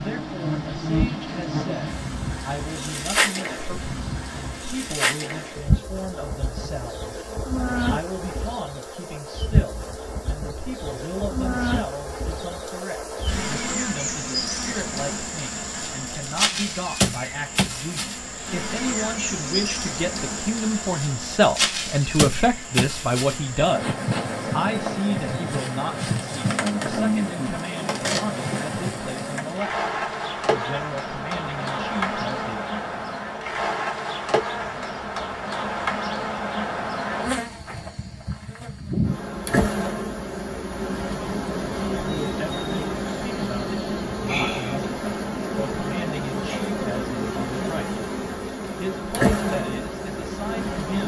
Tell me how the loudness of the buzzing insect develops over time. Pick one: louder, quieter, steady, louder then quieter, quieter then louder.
steady.